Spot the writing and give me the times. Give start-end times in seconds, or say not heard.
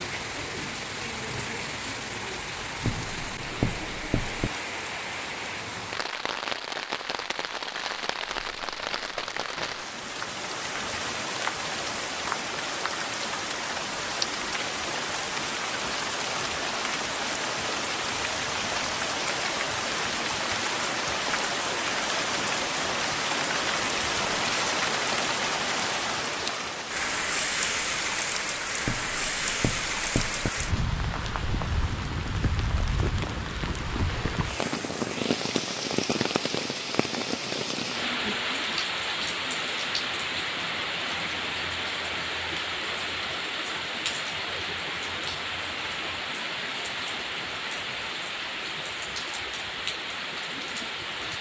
2.9-4.5, 28.9-30.5.